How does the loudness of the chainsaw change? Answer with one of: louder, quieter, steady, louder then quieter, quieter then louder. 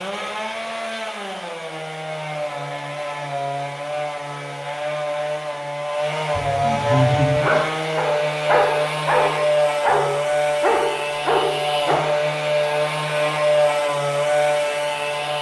louder.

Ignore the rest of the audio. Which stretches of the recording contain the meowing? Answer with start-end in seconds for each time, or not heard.
6.3-7.4.